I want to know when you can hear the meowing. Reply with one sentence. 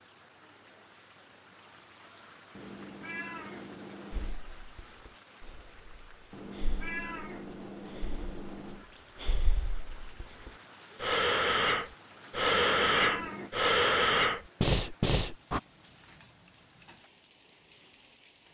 You can hear the meowing from 2.5 to 4.3 s, from 6.3 to 8.9 s and from 12.4 to 13.5 s.